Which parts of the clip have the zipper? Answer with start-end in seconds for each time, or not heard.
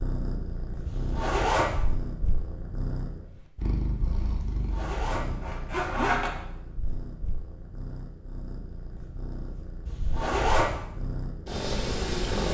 0.8-1.8, 4.5-6.3, 9.8-10.8.